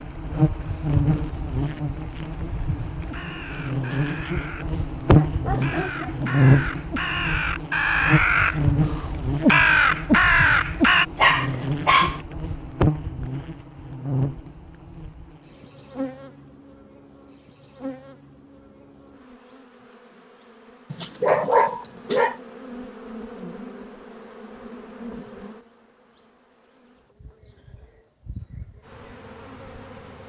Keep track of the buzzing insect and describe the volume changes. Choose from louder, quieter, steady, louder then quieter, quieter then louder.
quieter.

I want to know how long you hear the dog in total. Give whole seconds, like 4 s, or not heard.
4 s.